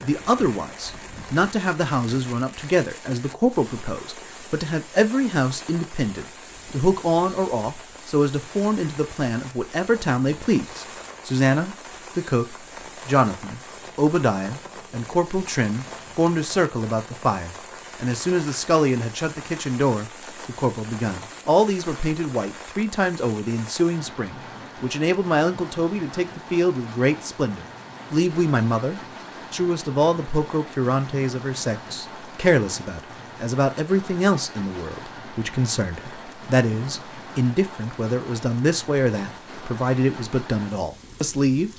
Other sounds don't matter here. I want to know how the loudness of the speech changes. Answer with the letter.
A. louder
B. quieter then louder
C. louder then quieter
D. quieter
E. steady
E.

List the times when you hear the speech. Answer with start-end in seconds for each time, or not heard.
0.0-41.7.